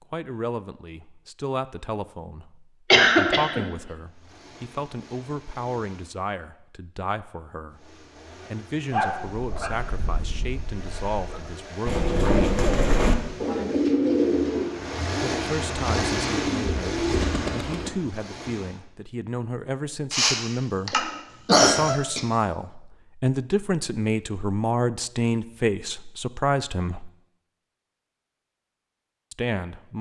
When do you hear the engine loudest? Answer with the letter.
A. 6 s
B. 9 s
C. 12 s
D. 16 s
D.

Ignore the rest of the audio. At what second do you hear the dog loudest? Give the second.
9 s.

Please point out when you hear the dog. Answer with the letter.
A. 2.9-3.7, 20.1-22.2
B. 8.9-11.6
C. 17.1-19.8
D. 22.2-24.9
B.